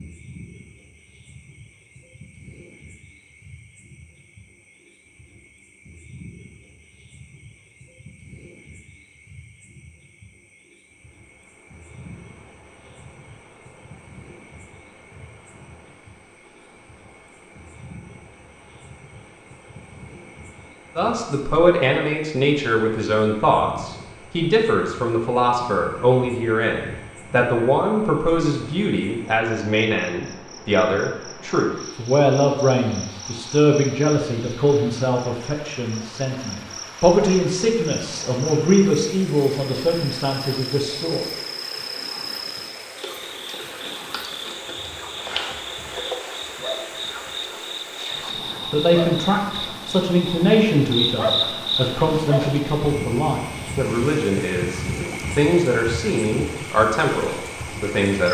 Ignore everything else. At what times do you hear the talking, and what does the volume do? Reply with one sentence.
The talking can be heard from 20.9 to 41.2 s, at a steady volume; and from 48.2 to 58.2 s, at a steady volume.